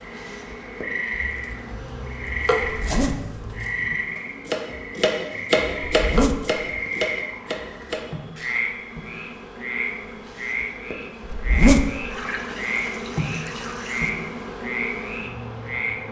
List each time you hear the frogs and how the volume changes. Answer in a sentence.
The frogs can be heard from 0.0 to 16.0 s, at a steady volume.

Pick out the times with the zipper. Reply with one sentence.
You can hear the zipper from 2.8 to 3.5 s, from 6.0 to 6.7 s and from 11.3 to 12.1 s.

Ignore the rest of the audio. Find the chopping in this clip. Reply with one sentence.
The chopping can be heard from 1.1 to 8.6 s.